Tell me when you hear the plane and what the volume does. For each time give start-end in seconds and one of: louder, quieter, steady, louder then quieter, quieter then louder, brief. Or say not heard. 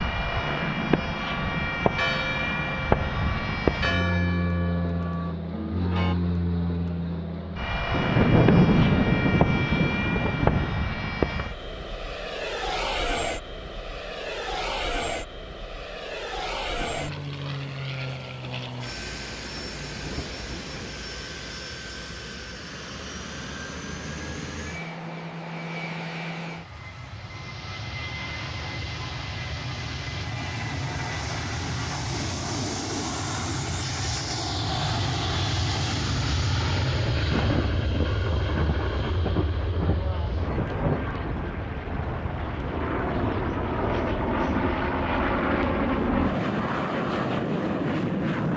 0.0-48.5 quieter then louder.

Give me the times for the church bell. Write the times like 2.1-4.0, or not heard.
0.9-6.2.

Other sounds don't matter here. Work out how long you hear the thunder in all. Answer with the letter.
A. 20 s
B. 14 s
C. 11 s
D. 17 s
C.